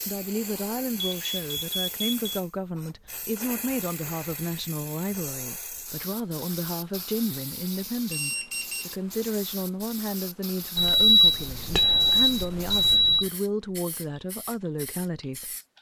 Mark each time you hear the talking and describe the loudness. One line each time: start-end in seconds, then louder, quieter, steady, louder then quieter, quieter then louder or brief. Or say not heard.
0.1-15.6 steady.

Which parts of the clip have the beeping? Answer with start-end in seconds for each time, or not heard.
1.0-2.4, 8.1-8.9, 10.8-13.2.